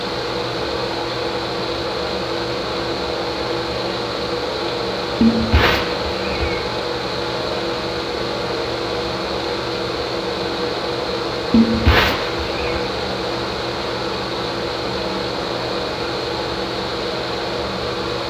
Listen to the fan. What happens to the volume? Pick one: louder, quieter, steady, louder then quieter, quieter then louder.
steady.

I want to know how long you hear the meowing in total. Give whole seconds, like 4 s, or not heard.
3 s.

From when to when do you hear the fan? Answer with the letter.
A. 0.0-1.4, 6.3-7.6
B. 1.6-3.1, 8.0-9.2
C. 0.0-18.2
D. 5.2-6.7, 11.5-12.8
C.